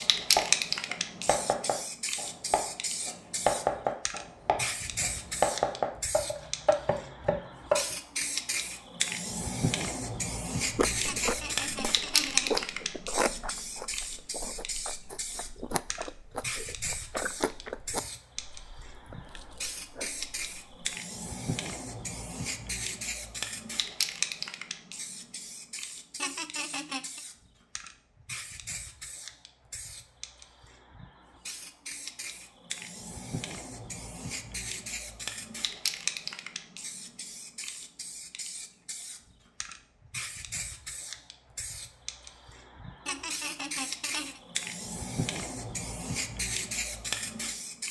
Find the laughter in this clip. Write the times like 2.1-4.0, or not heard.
11.1-12.7, 26.1-27.2, 43.0-44.4.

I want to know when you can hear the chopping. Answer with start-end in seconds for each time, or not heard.
0.3-8.0.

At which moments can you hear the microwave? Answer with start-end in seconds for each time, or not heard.
not heard.